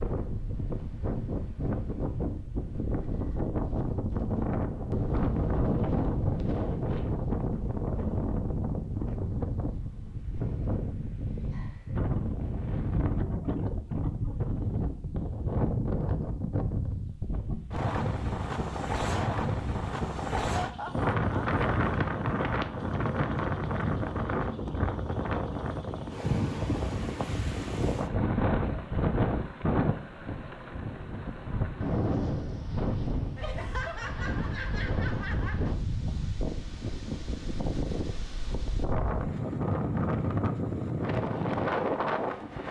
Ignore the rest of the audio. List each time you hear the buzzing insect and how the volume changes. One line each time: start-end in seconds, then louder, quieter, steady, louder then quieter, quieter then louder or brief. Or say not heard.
not heard.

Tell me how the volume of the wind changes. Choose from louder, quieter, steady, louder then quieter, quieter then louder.
steady.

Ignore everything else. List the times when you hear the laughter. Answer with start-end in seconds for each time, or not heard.
11.4-12.1, 20.1-21.4, 33.4-35.7.